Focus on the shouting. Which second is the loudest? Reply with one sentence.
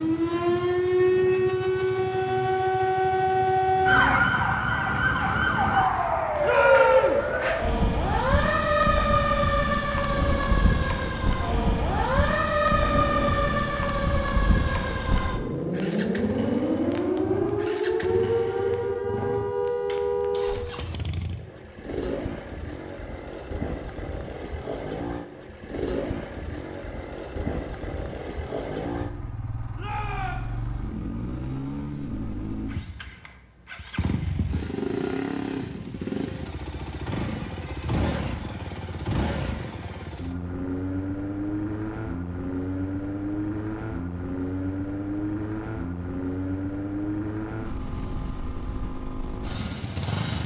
The loudest moment of the shouting is at 7 seconds.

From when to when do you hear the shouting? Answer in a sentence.
You can hear the shouting from 6.4 to 7.2 s and from 29.8 to 30.4 s.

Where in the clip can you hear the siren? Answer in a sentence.
You can hear the siren from 0.0 to 20.6 s.